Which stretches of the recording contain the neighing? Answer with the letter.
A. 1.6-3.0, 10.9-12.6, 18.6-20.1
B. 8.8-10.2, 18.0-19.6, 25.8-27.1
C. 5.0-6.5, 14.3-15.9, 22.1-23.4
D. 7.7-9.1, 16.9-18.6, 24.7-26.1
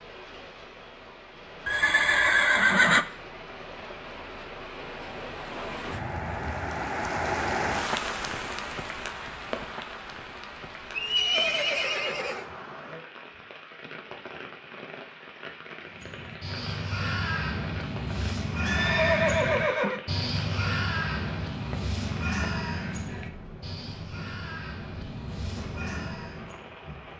A.